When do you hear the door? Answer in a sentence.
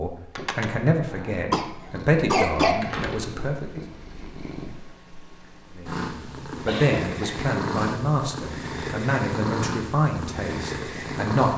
You can hear the door from 2.8 to 4.2 s.